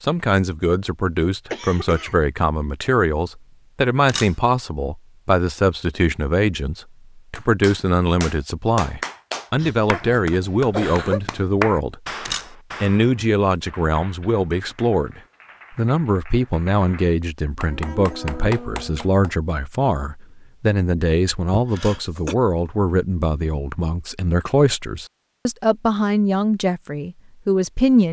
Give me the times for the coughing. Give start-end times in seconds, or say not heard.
1.5-2.1, 9.6-11.2, 21.5-22.4.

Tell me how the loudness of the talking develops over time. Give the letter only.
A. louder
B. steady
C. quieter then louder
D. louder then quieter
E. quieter
B.